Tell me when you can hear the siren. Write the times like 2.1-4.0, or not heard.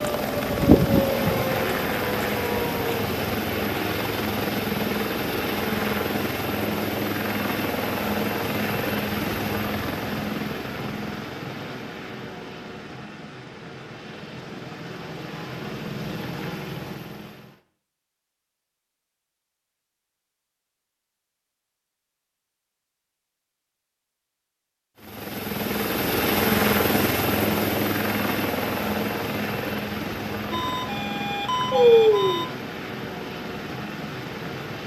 0.0-3.1, 30.5-32.5.